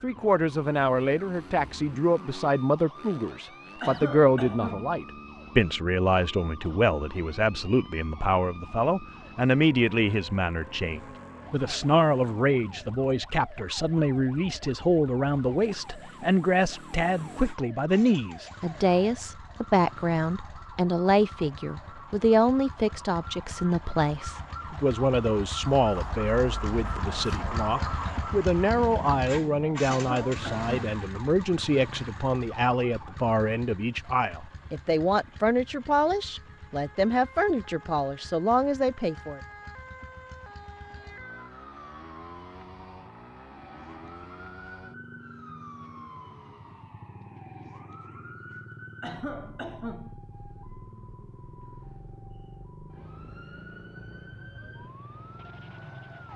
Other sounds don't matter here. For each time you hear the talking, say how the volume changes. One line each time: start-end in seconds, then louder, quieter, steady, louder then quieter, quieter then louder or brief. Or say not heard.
0.0-39.4 steady.